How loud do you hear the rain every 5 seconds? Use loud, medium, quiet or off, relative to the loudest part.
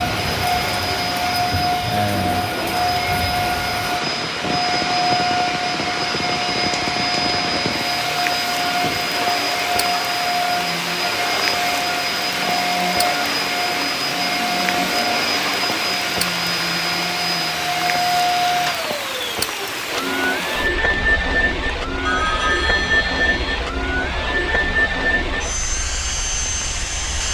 loud, loud, loud, loud, medium, medium.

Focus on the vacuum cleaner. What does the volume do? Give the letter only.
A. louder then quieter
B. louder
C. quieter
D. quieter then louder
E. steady
E.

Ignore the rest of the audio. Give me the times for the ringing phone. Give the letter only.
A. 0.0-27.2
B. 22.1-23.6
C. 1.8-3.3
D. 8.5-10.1
B.